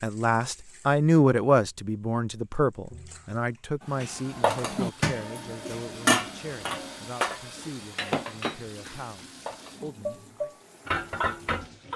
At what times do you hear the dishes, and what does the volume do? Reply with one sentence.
You can hear the dishes from 4.0 to 11.9 s, getting quieter then louder.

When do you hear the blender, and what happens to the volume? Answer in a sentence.
The blender can't be heard in this clip.